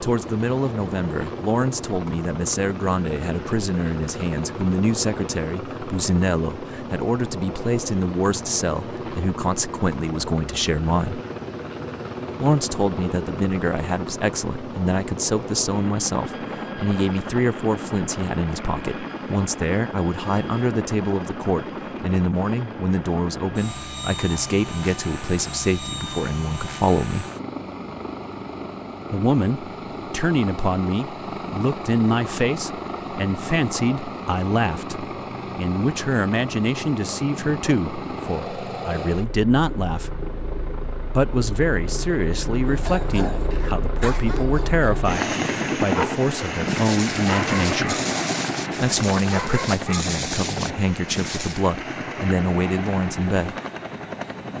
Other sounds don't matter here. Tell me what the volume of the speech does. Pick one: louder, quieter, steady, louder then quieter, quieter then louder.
steady.